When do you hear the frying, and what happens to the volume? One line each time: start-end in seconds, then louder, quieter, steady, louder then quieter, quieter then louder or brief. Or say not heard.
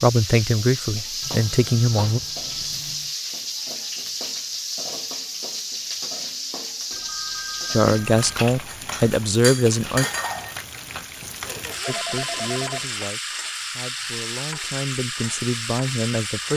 0.0-16.5 steady.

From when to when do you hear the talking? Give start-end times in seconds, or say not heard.
0.0-2.2, 7.7-10.1, 11.8-16.5.